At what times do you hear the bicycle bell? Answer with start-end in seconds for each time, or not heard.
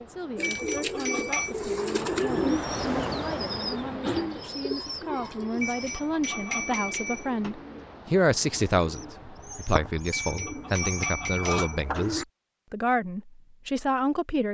0.4-1.6, 5.6-7.5, 10.1-12.1.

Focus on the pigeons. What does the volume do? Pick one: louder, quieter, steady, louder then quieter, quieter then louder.
quieter then louder.